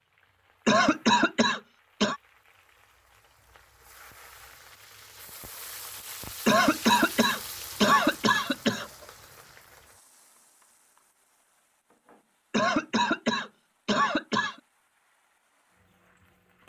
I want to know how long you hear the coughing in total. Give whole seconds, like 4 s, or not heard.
6 s.